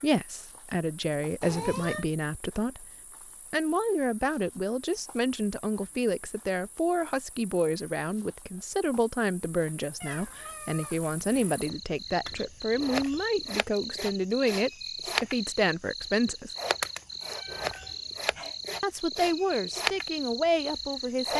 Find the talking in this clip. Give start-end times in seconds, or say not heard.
0.0-2.9, 3.5-16.5, 18.8-21.3.